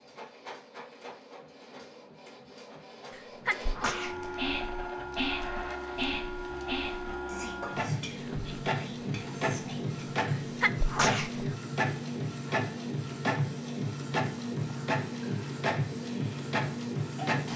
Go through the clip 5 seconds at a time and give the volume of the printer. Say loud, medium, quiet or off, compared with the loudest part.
medium, loud, loud, loud.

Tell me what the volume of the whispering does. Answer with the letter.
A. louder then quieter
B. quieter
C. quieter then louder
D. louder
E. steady
B.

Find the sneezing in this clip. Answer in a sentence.
The sneezing can be heard from 3.1 to 4.3 s and from 10.2 to 11.5 s.